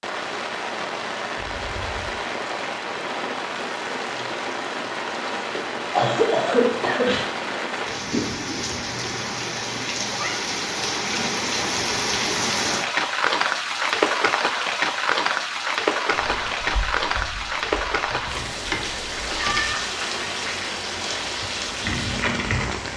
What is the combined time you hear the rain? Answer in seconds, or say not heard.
23 s.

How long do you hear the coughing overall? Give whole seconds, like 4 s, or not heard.
2 s.